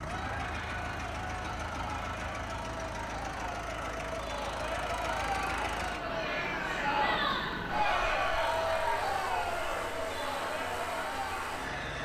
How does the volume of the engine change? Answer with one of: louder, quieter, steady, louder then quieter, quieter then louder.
steady.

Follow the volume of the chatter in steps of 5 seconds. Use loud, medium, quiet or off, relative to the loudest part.
medium, loud, medium.